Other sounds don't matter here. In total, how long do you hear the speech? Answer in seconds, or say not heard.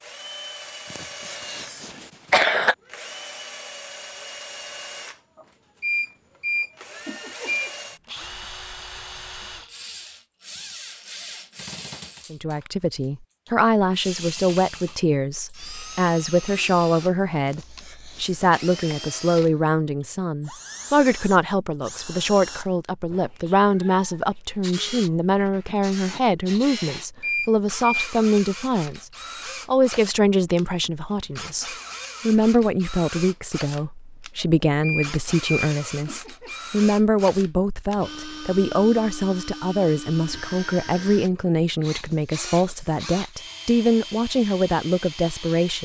33 s.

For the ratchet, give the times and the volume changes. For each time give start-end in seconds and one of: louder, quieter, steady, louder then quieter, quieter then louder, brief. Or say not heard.
not heard.